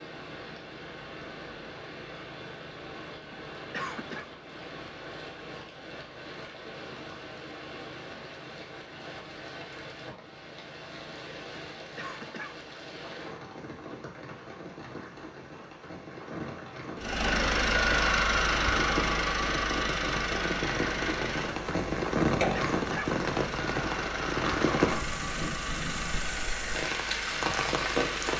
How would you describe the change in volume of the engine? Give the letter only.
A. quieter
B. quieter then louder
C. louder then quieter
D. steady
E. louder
A.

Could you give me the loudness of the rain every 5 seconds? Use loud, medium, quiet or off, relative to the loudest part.
quiet, quiet, quiet, medium, loud, loud.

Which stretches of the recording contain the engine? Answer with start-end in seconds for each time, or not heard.
17.0-28.3.